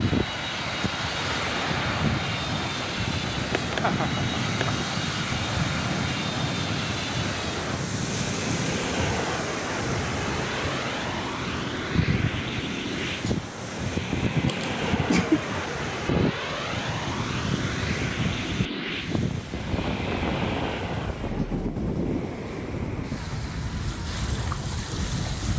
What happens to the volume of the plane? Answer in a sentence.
The loudness of the plane stays about the same.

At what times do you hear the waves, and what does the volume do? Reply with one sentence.
You can hear the waves from 0.0 to 25.5 s, at a steady volume.